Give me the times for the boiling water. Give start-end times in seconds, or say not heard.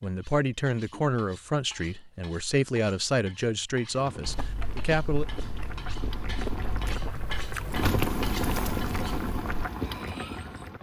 3.8-10.7.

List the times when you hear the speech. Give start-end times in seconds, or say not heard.
0.0-5.2.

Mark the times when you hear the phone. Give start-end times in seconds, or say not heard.
not heard.